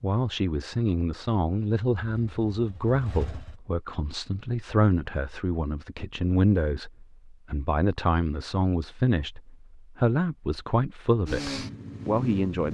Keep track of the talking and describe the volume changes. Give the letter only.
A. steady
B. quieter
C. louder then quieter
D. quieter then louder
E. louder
A.